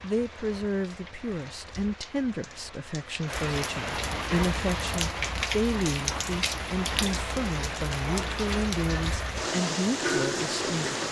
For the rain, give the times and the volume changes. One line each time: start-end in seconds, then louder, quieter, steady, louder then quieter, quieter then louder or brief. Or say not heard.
0.0-11.0 louder.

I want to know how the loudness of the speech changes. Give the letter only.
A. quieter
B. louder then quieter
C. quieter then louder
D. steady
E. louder
D.